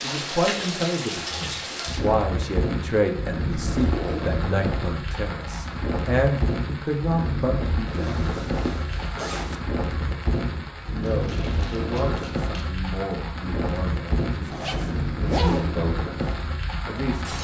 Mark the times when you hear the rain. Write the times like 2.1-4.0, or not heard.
0.0-17.4.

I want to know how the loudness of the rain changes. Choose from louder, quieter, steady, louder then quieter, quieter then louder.
steady.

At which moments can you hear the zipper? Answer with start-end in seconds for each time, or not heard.
3.6-4.2, 7.8-9.6, 14.5-15.7.